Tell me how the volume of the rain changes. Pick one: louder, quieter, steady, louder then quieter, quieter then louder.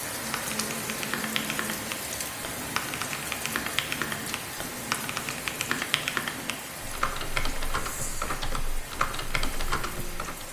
quieter.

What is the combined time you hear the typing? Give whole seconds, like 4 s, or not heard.
10 s.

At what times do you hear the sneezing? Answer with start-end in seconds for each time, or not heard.
not heard.